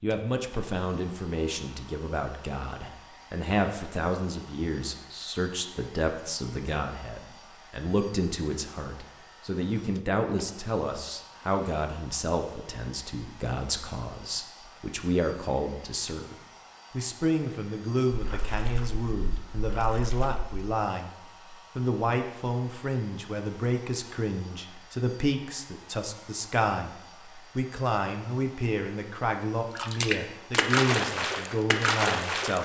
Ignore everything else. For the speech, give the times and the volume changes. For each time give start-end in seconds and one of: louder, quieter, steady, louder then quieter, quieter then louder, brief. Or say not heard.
0.0-32.6 steady.